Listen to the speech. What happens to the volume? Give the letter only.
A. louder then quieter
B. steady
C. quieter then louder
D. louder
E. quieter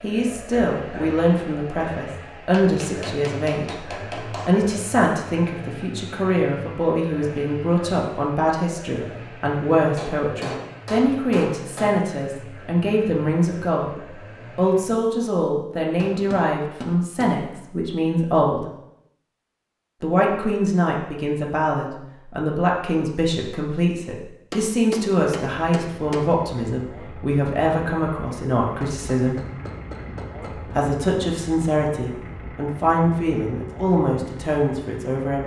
B.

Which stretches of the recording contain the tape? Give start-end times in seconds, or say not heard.
not heard.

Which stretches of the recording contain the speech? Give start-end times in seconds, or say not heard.
0.0-3.9, 4.5-13.9, 14.6-18.6, 20.0-29.4, 30.6-35.4.